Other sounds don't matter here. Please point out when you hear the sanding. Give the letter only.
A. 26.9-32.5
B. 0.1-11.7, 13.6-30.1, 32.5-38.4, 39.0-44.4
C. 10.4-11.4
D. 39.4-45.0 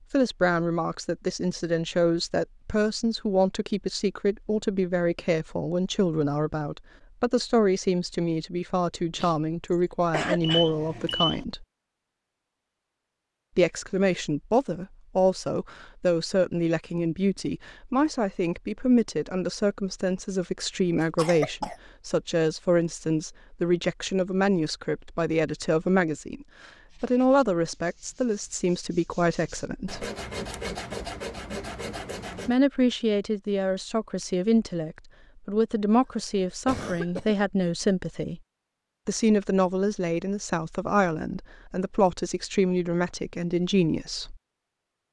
A.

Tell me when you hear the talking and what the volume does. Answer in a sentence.
You can hear the talking from 0.1 to 11.7 s, at a steady volume; from 13.6 to 30.1 s, at a steady volume; from 32.5 to 38.4 s, at a steady volume; and from 39.0 to 44.4 s, at a steady volume.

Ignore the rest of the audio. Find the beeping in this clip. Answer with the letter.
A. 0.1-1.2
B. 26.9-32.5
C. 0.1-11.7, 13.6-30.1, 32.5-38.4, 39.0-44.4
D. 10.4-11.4
D.